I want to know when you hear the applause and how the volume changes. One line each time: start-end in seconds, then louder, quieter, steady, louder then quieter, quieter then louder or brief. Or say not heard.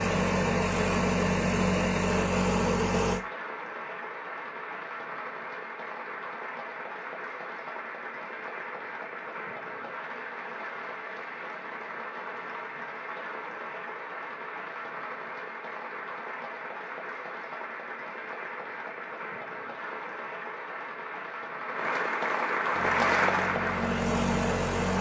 0.1-24.9 louder.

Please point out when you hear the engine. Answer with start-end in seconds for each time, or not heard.
0.0-3.2, 22.7-24.9.